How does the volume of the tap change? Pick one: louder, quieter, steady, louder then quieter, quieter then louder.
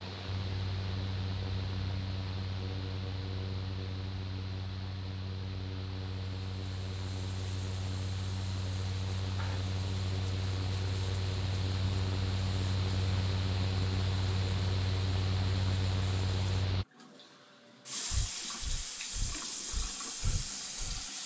louder.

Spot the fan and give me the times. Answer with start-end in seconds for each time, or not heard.
0.0-16.9.